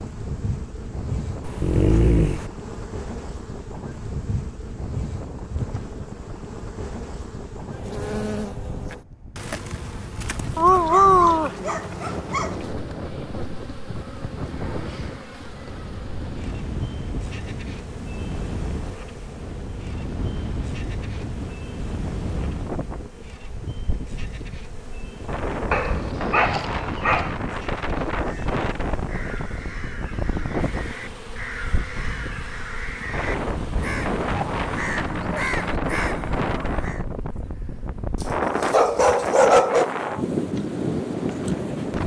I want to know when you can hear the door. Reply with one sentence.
You can't hear the door here.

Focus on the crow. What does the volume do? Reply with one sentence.
The loudness of the crow goes up.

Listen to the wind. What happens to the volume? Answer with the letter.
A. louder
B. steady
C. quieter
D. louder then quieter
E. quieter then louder
A.